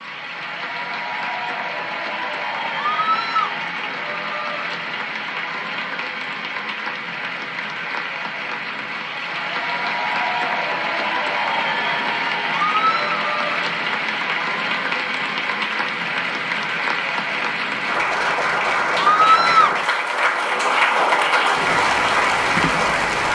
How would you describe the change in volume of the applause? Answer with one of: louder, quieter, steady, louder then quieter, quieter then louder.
louder.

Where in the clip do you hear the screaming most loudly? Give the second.
19 s.